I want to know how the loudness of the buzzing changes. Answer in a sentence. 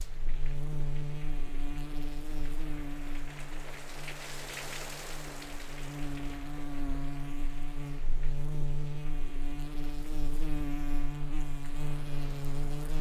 The loudness of the buzzing goes down, then up.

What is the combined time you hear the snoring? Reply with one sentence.
The snoring can't be heard in this clip.